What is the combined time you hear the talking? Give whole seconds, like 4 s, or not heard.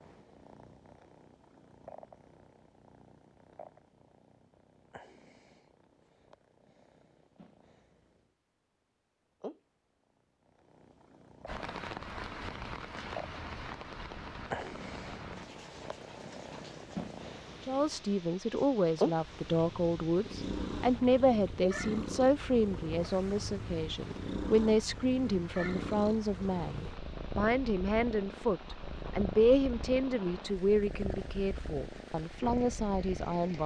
16 s.